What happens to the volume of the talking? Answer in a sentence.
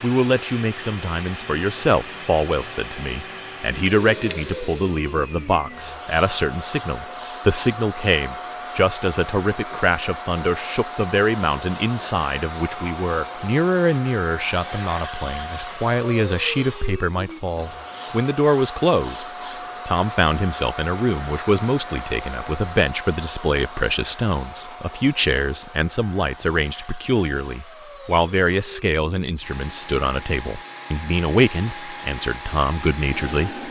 The loudness of the talking stays about the same.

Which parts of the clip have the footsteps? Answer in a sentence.
You can't hear the footsteps here.